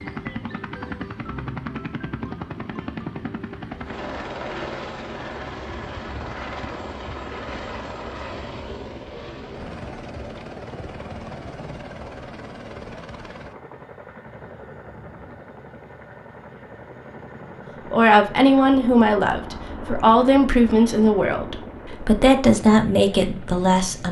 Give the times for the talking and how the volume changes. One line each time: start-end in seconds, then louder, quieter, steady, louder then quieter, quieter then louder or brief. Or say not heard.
17.9-24.0 steady.